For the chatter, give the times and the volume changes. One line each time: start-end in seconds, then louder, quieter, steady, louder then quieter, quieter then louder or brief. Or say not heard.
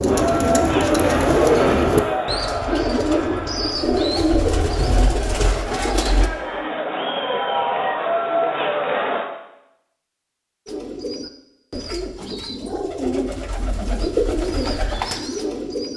0.0-9.3 quieter then louder.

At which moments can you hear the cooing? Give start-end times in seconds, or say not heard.
0.0-6.3, 10.7-15.9.